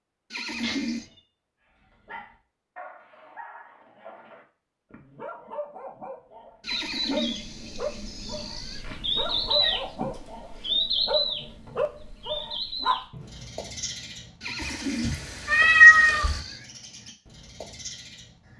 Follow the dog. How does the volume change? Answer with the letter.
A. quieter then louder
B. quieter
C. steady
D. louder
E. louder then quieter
D.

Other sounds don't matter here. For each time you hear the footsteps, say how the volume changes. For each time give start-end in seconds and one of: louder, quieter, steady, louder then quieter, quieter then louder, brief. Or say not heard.
not heard.